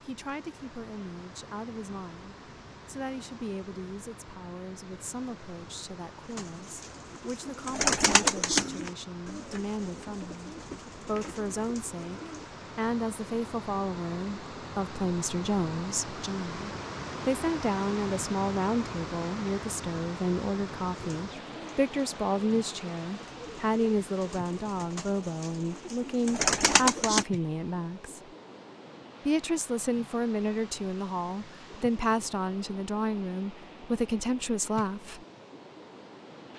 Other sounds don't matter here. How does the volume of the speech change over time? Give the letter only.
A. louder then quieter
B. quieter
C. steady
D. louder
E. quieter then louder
D.